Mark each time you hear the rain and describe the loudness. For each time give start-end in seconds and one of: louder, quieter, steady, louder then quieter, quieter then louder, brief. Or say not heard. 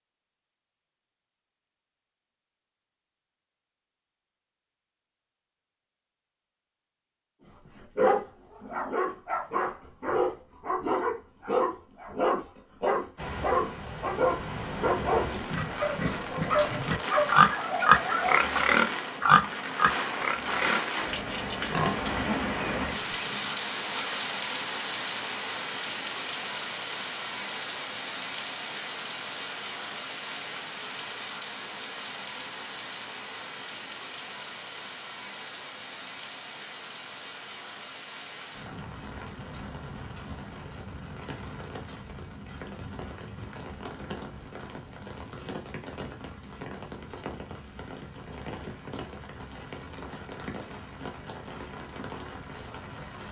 13.2-53.2 quieter.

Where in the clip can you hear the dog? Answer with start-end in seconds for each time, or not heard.
7.8-18.4.